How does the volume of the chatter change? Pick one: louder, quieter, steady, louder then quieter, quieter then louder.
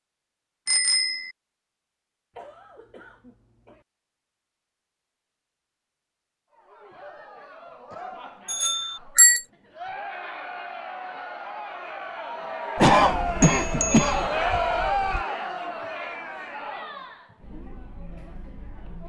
louder then quieter.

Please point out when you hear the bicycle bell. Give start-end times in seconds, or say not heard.
0.7-1.4, 8.4-9.4, 13.4-15.2.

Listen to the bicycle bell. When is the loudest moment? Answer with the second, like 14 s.
9 s.